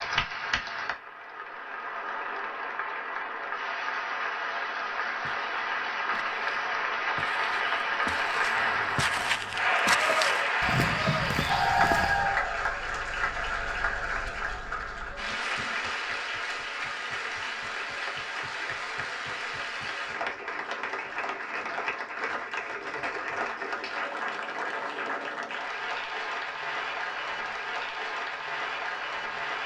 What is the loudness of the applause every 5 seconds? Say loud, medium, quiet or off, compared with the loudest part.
medium, loud, loud, medium, medium, medium.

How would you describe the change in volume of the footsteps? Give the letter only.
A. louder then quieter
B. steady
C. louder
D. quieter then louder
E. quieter
C.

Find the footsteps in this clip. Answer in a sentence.
The footsteps can be heard from 5.2 to 12.3 s.